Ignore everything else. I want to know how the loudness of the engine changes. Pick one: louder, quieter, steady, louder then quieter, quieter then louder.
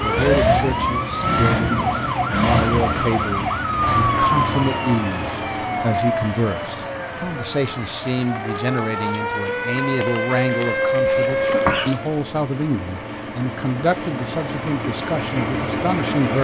quieter then louder.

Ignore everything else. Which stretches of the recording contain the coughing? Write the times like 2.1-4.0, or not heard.
11.1-11.9.